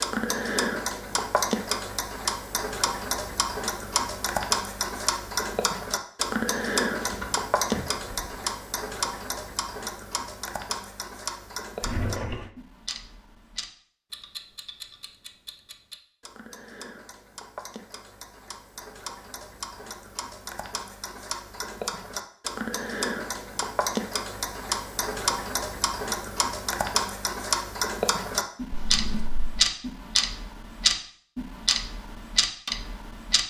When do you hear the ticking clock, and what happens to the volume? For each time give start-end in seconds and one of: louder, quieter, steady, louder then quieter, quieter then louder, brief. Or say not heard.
0.0-33.4 quieter then louder.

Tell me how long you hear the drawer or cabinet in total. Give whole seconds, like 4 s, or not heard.
3 s.